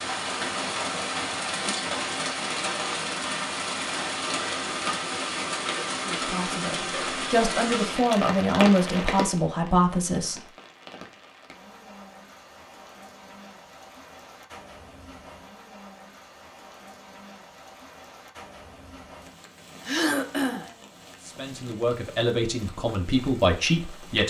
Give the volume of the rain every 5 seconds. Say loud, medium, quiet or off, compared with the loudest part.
loud, loud, quiet, quiet, quiet.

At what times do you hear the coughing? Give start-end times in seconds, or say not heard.
19.9-20.7.